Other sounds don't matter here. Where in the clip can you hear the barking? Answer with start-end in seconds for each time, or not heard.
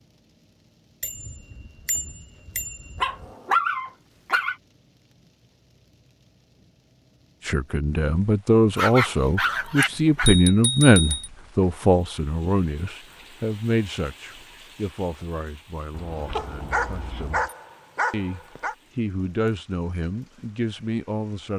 3.0-4.5, 8.8-10.3, 16.4-18.8.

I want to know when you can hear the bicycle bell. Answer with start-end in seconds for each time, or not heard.
1.0-3.3, 9.8-11.3, 15.9-17.6.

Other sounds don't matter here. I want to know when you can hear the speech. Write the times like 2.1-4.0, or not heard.
7.5-17.4, 18.1-21.5.